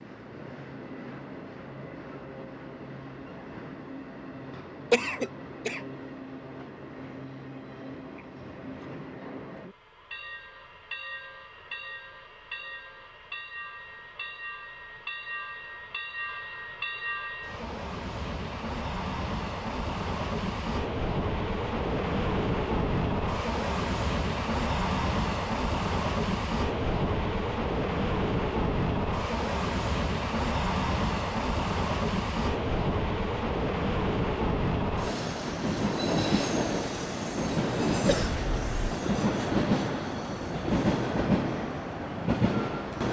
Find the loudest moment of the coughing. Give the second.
5 s.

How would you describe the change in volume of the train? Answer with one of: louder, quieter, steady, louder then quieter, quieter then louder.
louder.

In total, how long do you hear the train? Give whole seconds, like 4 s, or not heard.
43 s.